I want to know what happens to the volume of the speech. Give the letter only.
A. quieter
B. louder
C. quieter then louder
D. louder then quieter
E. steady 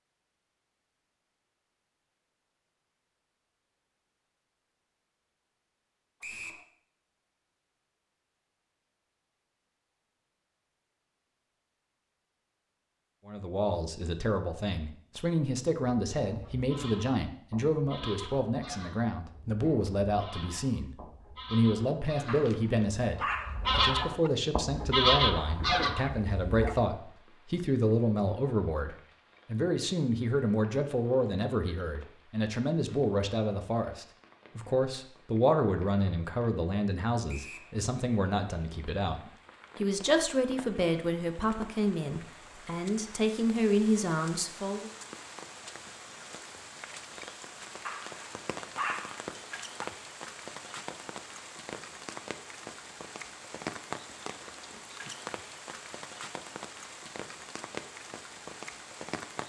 E.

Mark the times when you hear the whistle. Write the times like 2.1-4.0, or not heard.
6.2-6.7, 37.2-37.7.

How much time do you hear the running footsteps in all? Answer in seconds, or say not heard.
not heard.